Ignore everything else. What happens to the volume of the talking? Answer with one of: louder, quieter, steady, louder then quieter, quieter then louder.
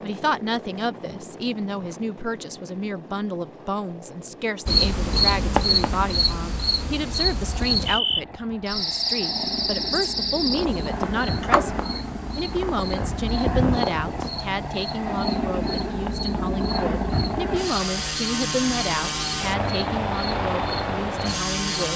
steady.